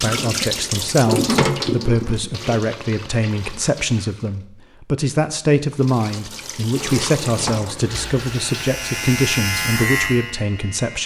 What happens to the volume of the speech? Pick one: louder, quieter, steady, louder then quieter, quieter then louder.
steady.